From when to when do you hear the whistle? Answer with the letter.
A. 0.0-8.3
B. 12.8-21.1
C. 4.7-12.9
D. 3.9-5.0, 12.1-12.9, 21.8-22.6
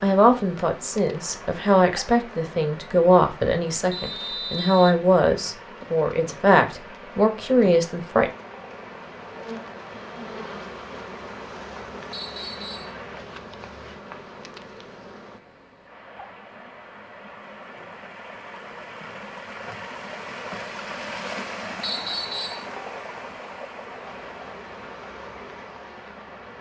D.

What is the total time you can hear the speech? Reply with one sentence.
You can hear the speech for 8 seconds altogether.